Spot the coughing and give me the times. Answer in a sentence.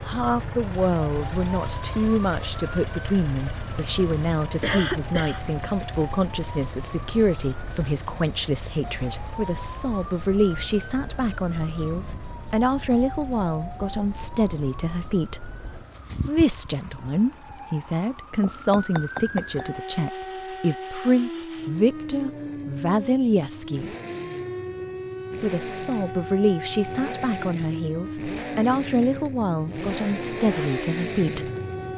The coughing can be heard from 4.6 to 5.5 s.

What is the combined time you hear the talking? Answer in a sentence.
The talking can be heard for 29 seconds in total.